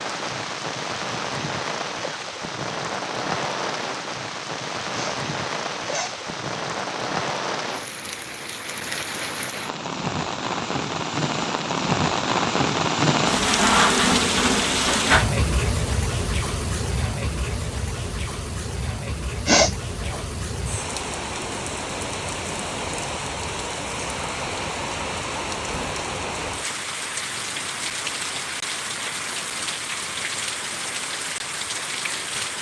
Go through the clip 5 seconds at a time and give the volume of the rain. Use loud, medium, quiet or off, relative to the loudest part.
medium, medium, loud, medium, medium, medium, medium.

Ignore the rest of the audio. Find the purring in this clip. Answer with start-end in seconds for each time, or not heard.
not heard.